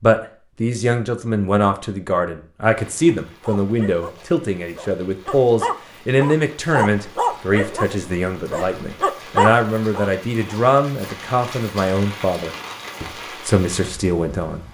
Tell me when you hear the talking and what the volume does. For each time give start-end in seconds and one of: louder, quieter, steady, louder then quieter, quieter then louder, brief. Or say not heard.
0.0-14.6 steady.